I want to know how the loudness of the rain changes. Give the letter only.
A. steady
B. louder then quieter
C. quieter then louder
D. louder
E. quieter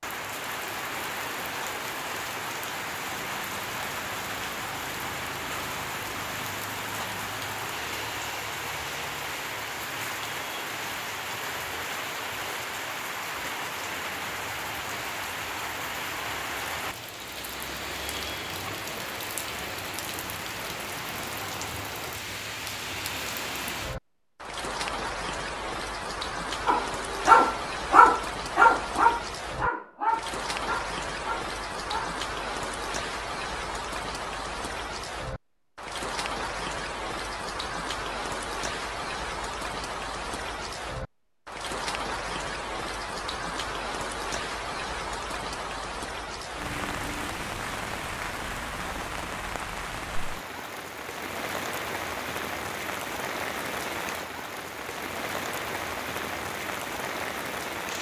A.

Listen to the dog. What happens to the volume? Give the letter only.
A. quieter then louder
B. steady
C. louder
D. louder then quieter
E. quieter
E.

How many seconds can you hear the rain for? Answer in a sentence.
You can hear the rain for 58 seconds altogether.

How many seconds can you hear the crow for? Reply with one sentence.
You can't hear the crow here.